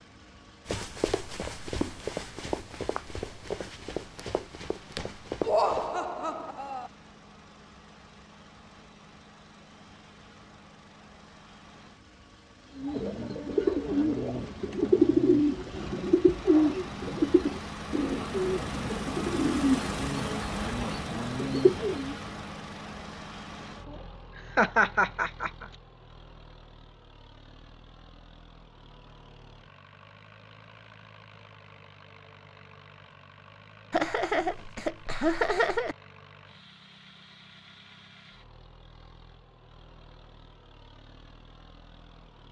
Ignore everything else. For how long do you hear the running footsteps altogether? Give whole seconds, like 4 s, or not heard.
5 s.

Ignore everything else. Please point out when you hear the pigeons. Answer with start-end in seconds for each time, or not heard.
12.8-22.1.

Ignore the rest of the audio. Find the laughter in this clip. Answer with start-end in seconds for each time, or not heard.
5.4-6.9, 24.6-25.6, 33.9-36.0.